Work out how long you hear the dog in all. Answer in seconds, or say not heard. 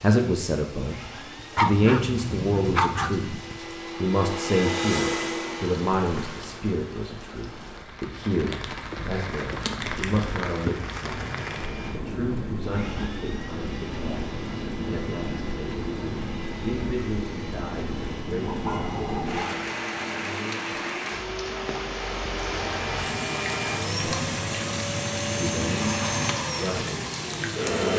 3 s.